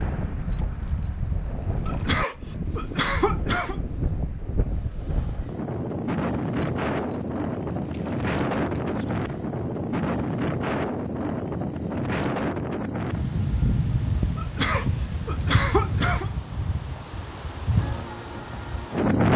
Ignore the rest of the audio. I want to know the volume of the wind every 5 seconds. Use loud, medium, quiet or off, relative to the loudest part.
medium, loud, loud, loud.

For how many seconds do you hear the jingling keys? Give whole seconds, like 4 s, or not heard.
7 s.